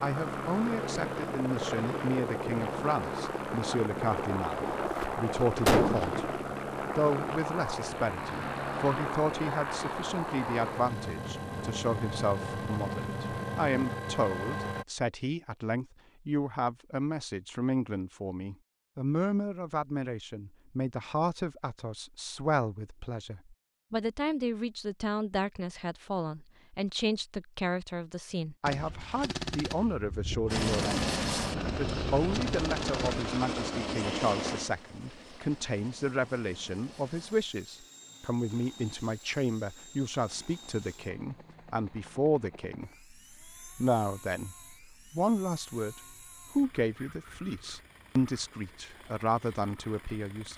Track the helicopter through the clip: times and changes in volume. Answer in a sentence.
The helicopter can be heard from 0.0 to 14.8 s, at a steady volume; and from 30.5 to 50.5 s, getting quieter.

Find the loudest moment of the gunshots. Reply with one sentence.
The loudest moment of the gunshots is at 6 seconds.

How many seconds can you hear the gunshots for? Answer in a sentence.
The gunshots can be heard for 6 seconds in total.